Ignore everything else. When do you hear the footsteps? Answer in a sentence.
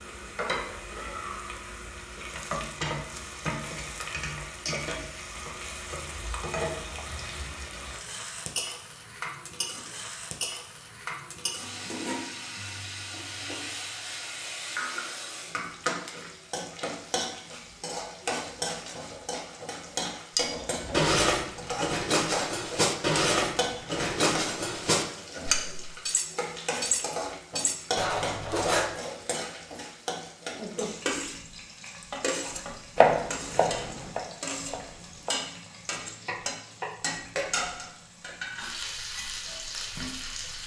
The footsteps can't be heard in this clip.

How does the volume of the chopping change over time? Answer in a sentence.
The loudness of the chopping goes down, then up.